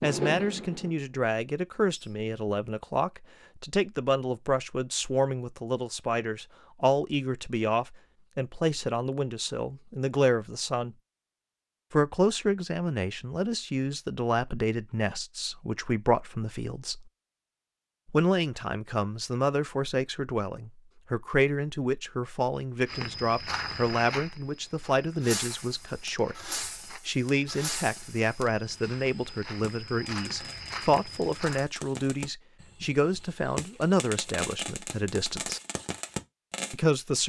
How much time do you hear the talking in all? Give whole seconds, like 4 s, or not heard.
34 s.